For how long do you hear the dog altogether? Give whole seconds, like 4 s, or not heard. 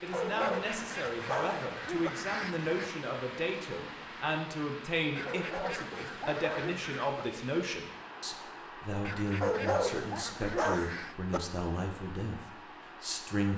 6 s.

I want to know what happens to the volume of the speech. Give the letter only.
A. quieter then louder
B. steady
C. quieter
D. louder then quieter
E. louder
B.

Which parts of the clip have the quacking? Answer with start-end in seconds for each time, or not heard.
0.4-2.9, 5.2-7.1, 9.1-11.2.